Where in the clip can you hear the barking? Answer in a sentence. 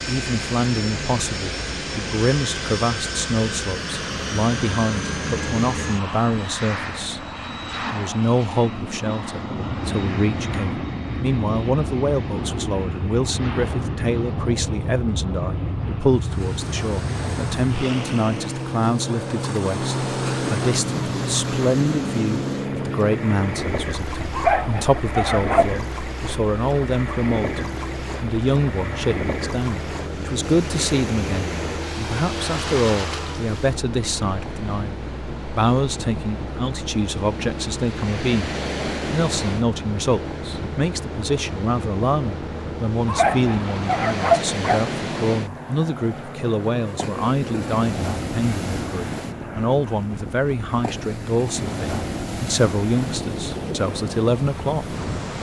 The barking can be heard from 24.3 to 25.8 s and from 43.0 to 45.0 s.